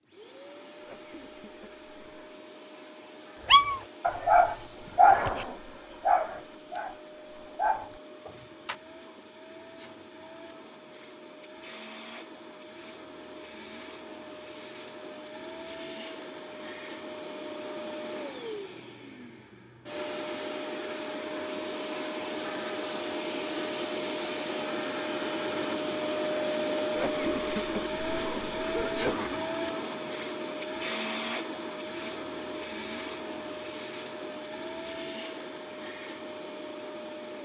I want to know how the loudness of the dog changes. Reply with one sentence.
The volume of the dog goes down, then up.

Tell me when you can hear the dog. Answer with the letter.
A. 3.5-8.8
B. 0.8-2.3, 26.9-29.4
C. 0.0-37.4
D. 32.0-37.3
A.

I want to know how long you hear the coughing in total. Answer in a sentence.
You can hear the coughing for 4 seconds altogether.